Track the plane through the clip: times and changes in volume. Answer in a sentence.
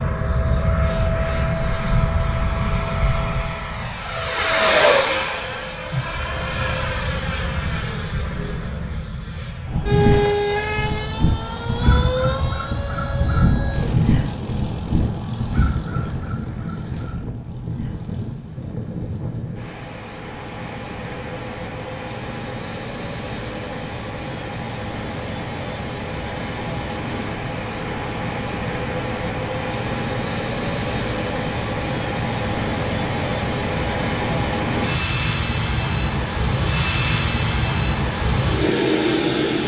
You can hear the plane from 0.0 to 39.6 s, getting quieter then louder.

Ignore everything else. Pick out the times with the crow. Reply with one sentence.
You can hear the crow from 9.7 to 18.1 s.